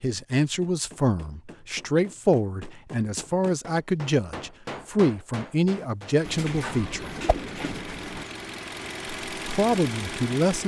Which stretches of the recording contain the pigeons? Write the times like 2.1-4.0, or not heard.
6.2-8.2.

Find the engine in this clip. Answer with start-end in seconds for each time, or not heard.
6.2-10.6.